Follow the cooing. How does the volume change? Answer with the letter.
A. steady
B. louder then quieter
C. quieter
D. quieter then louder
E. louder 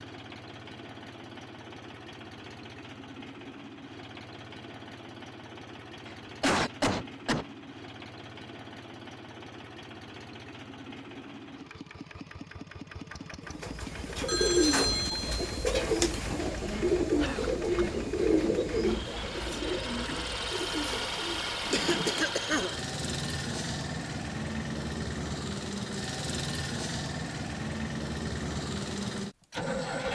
C.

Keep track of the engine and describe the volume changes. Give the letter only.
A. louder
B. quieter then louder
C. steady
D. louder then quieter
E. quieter
A.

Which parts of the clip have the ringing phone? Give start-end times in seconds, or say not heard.
14.2-15.4.